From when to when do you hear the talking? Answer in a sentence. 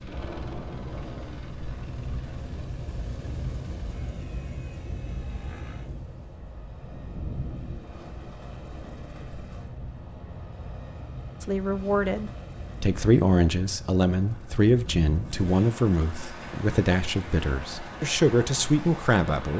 You can hear the talking from 11.4 to 19.5 s.